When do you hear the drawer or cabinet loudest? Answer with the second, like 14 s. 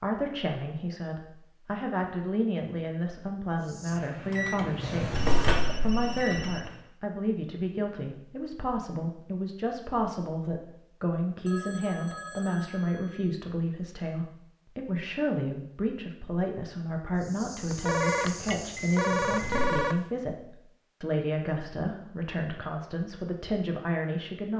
5 s.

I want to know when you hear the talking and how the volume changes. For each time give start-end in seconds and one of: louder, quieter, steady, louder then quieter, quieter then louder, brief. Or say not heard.
0.0-24.5 steady.